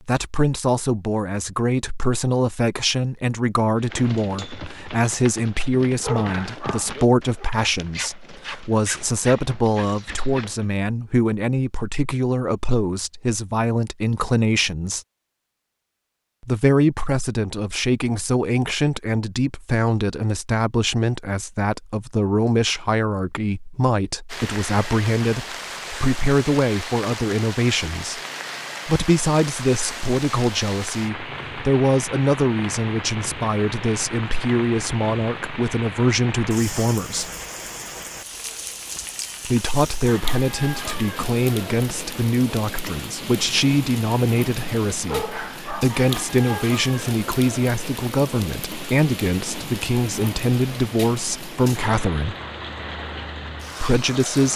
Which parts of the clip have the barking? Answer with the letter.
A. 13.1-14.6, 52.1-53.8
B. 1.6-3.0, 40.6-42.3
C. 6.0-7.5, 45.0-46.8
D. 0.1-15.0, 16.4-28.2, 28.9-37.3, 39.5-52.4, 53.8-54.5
C.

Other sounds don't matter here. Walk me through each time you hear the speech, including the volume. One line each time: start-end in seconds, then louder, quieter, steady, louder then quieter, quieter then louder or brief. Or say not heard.
0.1-15.0 steady
16.4-28.2 steady
28.9-37.3 steady
39.5-52.4 steady
53.8-54.5 brief.